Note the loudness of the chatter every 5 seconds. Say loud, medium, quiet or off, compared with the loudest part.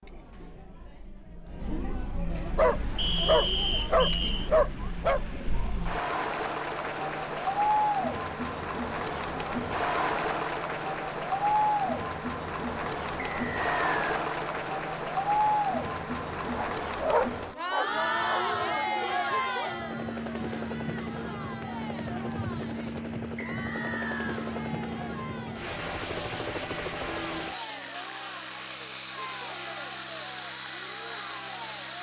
medium, loud, loud, loud, quiet, quiet, quiet.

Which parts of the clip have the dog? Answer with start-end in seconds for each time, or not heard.
2.5-5.2, 16.6-18.4.